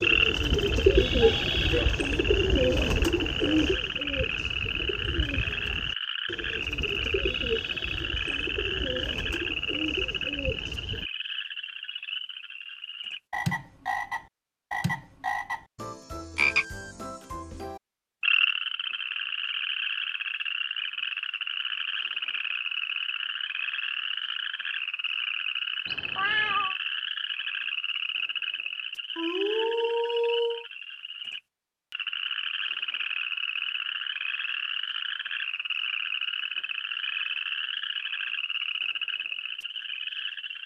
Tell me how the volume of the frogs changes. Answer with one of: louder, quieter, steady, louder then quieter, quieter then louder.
steady.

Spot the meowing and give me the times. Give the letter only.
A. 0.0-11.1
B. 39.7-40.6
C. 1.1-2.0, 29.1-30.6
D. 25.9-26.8
D.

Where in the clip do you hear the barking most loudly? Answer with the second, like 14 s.
30 s.